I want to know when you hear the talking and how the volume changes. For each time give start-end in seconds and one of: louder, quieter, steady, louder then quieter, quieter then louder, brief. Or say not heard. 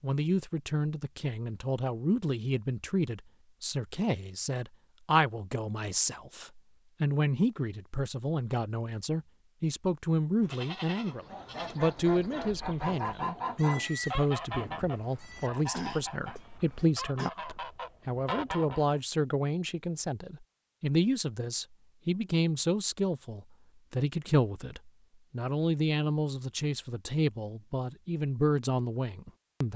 0.0-29.7 steady.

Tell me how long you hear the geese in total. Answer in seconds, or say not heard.
8 s.